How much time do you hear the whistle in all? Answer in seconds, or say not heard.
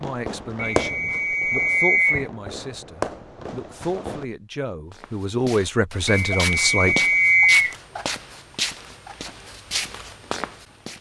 3 s.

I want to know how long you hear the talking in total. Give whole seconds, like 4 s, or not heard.
7 s.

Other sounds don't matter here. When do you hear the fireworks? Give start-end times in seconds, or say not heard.
0.0-4.2.